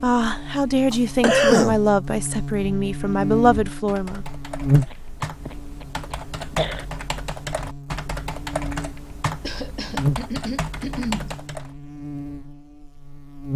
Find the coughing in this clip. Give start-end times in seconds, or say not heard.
0.9-1.8, 4.9-6.8, 9.4-11.3.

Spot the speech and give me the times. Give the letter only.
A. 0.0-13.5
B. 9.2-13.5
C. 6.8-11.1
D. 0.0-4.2
D.